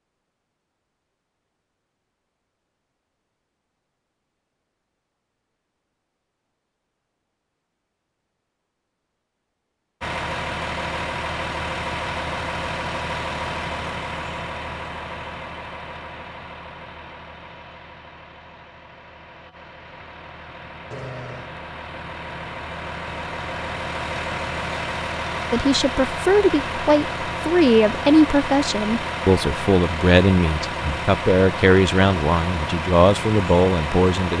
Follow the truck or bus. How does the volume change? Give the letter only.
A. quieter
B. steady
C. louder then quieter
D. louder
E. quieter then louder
E.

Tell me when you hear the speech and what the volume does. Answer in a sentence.
You can hear the speech from 25.5 to 34.3 s, at a steady volume.